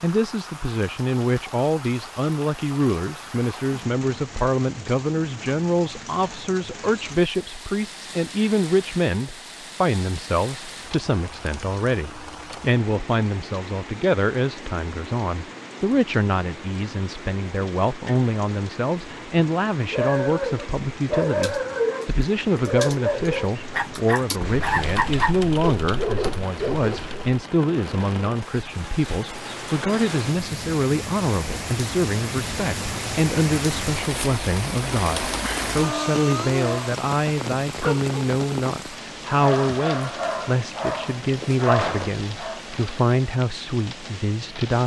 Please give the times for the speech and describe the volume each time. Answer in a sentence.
The speech can be heard from 0.0 to 44.8 s, at a steady volume.